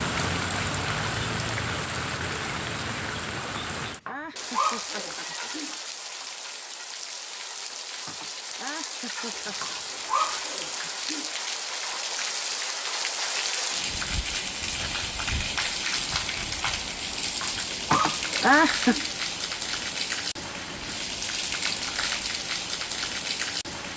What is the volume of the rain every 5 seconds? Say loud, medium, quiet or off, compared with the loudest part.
loud, medium, loud, loud, loud.